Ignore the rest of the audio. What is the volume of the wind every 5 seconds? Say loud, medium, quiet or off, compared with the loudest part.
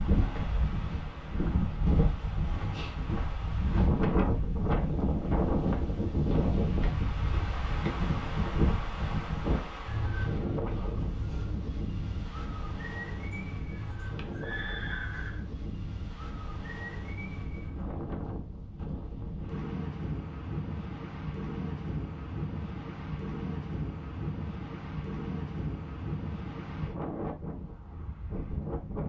loud, loud, medium, medium, medium, medium.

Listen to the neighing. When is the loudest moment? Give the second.
15 s.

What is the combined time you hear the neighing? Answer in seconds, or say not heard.
2 s.